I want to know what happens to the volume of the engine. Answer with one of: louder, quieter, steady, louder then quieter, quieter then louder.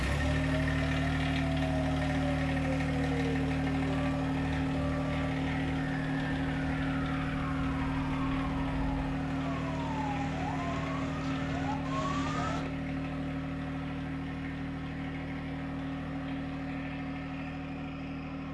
quieter.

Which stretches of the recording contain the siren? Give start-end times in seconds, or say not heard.
0.0-12.7.